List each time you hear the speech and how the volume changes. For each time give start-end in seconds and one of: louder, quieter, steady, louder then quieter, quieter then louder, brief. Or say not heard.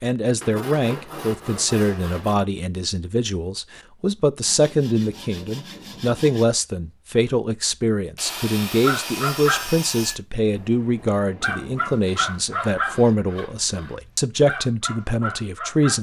0.0-15.9 steady.